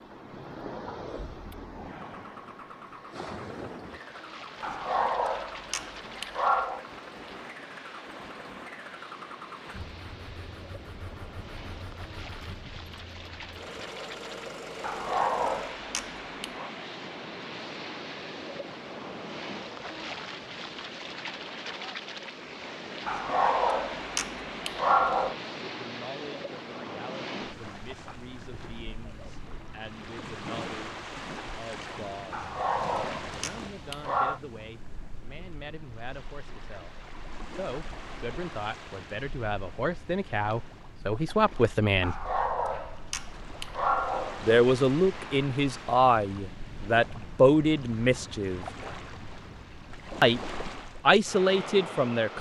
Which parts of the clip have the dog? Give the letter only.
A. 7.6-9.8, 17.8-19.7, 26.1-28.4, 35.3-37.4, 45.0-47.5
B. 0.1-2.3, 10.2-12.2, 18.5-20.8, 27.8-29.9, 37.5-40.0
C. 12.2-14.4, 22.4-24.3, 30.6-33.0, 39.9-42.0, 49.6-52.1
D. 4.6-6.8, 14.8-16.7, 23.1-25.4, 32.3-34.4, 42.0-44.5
D.